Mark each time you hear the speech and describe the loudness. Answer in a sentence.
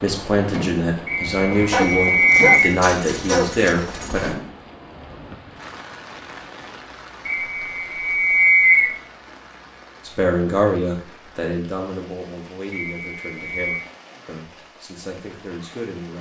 The speech can be heard from 0.0 to 4.3 s, at a steady volume; and from 10.1 to 16.1 s, getting quieter.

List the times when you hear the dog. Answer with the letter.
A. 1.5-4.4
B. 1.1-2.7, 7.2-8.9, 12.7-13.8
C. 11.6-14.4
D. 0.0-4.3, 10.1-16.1
A.